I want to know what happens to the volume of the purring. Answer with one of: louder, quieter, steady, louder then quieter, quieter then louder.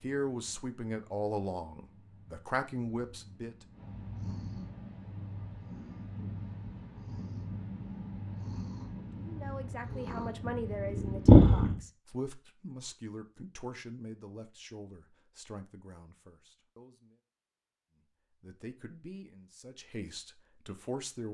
louder.